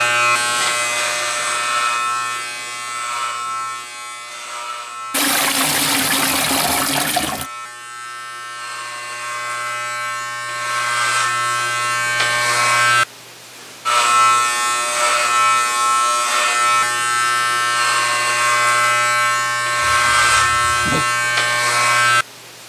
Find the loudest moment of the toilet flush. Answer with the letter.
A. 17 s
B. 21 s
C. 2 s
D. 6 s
D.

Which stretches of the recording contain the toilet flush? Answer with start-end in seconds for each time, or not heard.
5.1-7.5, 19.9-21.1.